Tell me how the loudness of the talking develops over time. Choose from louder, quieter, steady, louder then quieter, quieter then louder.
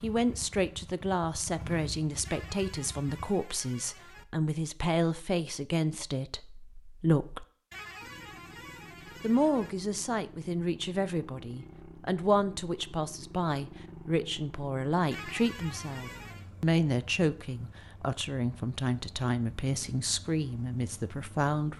steady.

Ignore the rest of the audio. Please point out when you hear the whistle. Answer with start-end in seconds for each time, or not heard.
not heard.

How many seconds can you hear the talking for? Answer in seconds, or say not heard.
20 s.